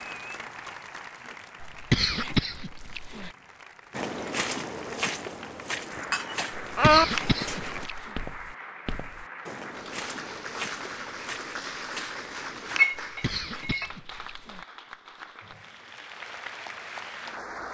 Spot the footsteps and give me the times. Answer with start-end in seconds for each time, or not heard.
3.9-12.8.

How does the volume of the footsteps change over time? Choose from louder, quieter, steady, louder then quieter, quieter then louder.
quieter.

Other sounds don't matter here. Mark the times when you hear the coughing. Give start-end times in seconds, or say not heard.
1.6-3.3, 6.7-8.2, 13.0-14.7.